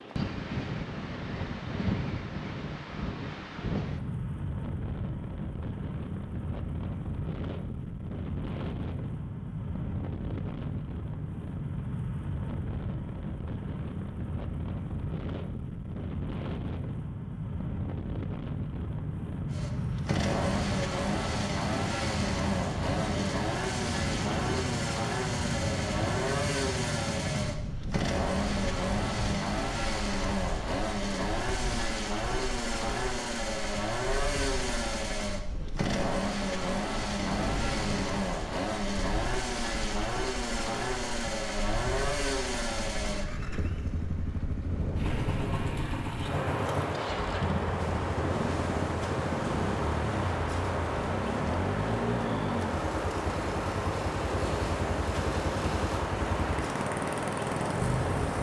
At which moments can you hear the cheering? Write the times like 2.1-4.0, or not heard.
not heard.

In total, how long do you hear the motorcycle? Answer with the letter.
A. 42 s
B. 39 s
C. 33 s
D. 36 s
B.